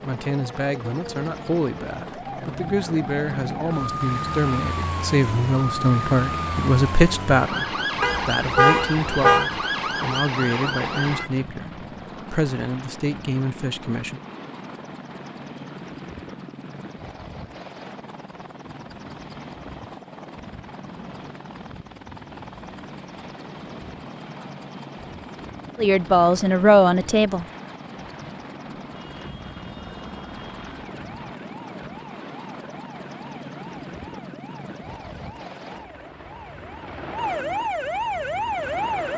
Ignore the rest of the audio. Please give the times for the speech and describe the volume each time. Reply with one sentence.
The speech can be heard from 0.0 to 14.2 s, getting louder then quieter; and briefly from 25.8 to 27.4 s.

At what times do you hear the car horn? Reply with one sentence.
The car horn can be heard from 8.0 to 9.4 s.